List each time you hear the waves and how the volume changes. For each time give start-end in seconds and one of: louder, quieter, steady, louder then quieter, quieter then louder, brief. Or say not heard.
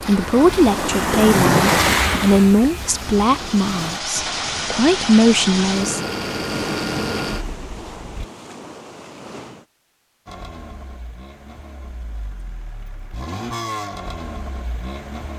0.0-9.7 quieter.